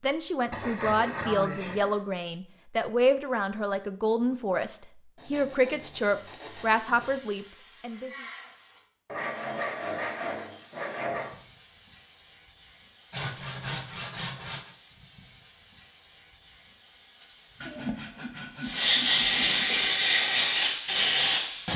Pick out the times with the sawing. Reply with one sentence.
The sawing can be heard from 0.5 to 2.0 s, from 5.2 to 7.2 s, from 9.1 to 11.4 s, from 13.1 to 14.8 s and from 17.6 to 19.9 s.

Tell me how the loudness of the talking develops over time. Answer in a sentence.
The volume of the talking stays about the same.